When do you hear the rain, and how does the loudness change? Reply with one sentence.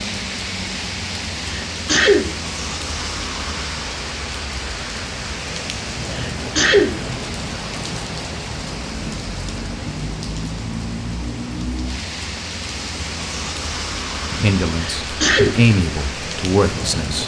The rain can be heard from 0.0 to 17.2 s, at a steady volume.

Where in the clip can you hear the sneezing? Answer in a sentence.
You can hear the sneezing from 1.4 to 2.2 s, from 6.1 to 6.9 s and from 14.8 to 15.6 s.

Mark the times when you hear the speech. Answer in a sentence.
You can hear the speech from 14.3 to 17.2 s.